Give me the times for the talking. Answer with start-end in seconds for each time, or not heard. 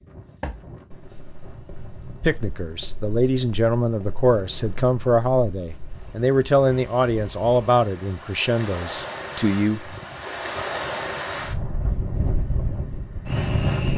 2.2-9.8.